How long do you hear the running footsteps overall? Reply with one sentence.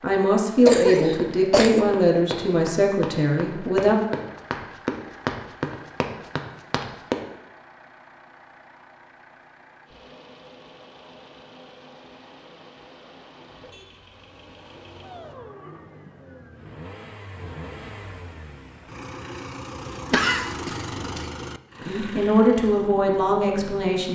You can hear the running footsteps for 6 seconds altogether.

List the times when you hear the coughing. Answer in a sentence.
The coughing can be heard from 0.7 to 1.9 s and from 20.1 to 21.3 s.